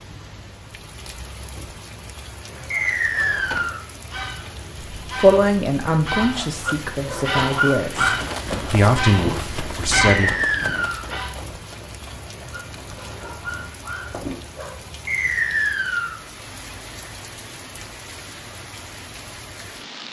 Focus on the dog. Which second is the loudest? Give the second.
8 s.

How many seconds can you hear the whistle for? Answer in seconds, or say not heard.
3 s.